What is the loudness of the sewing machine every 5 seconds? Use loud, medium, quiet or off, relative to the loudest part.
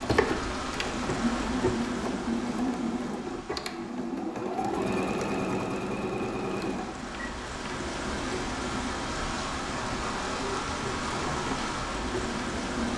loud, loud, medium.